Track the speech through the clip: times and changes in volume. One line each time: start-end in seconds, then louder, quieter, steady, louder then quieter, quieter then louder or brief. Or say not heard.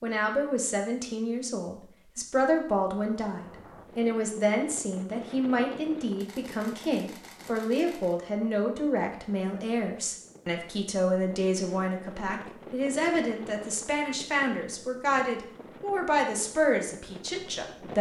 0.0-17.9 steady.